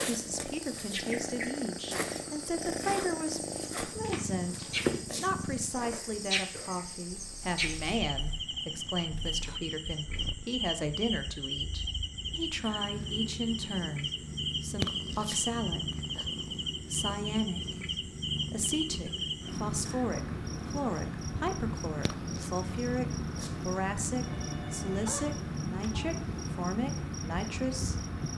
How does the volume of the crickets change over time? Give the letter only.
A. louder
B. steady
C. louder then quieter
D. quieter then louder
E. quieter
B.